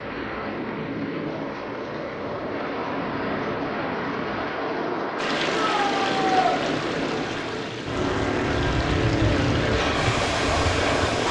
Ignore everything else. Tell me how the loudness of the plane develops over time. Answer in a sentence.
The volume of the plane goes up.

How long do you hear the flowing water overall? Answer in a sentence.
You can hear the flowing water for 6 seconds altogether.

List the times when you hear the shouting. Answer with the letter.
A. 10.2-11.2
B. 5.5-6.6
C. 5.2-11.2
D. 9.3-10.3
B.